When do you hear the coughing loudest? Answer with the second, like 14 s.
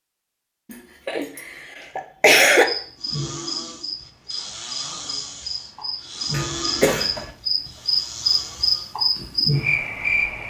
2 s.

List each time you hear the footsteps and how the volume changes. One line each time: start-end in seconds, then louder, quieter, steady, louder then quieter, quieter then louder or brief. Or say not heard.
not heard.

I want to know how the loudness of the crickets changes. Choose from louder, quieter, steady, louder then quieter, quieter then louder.
louder.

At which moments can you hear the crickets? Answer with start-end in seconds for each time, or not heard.
2.5-10.4.